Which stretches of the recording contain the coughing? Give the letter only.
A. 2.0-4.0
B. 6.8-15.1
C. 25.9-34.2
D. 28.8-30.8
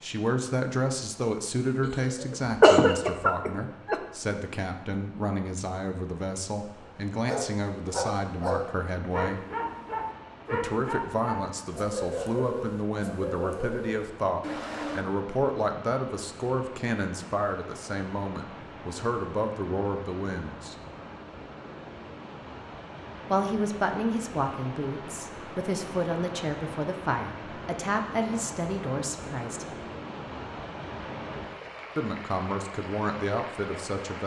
A.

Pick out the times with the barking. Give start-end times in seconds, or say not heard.
6.8-15.1.